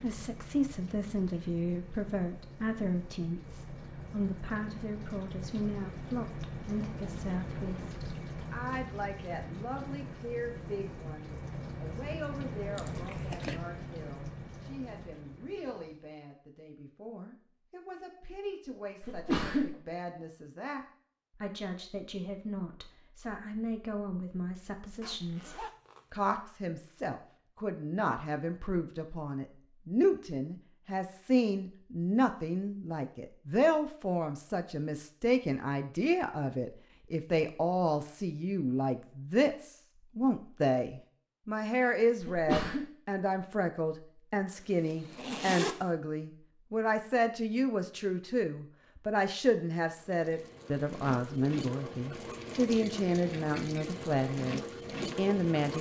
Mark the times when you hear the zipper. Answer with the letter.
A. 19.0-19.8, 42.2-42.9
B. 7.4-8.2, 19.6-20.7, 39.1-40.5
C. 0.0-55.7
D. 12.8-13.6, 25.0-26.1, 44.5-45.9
D.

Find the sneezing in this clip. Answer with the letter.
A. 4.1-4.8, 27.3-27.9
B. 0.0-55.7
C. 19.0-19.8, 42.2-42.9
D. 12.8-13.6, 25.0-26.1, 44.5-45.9
C.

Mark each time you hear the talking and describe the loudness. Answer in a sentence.
You can hear the talking from 0.0 to 55.7 s, getting quieter then louder.